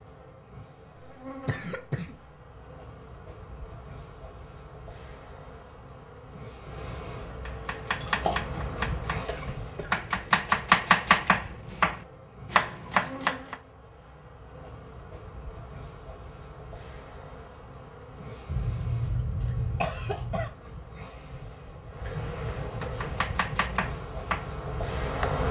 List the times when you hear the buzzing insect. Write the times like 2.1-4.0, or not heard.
0.0-25.4.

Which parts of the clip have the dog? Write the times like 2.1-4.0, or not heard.
not heard.